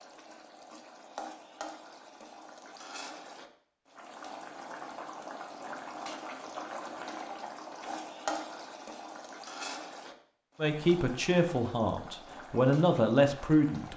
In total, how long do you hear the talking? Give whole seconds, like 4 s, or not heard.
3 s.